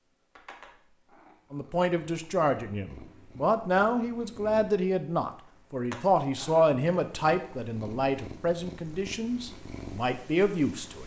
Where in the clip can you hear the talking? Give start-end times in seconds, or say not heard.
1.5-11.0.